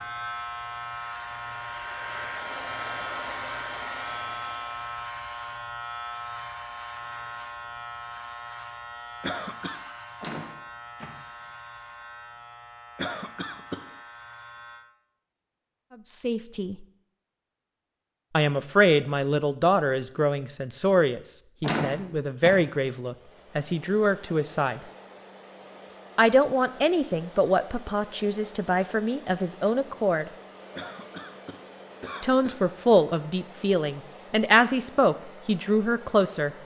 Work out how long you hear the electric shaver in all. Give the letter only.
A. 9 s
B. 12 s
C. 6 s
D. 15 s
D.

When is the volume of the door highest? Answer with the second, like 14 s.
22 s.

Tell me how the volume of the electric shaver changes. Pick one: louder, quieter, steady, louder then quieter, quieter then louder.
quieter.